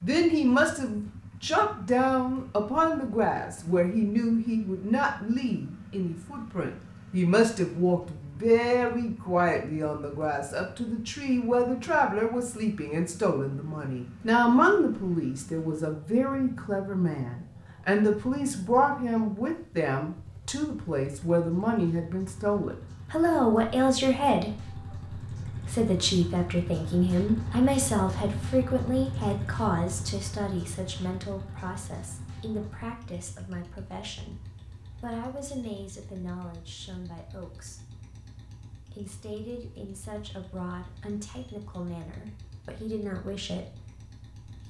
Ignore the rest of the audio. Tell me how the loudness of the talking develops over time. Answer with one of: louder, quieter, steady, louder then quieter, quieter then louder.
quieter.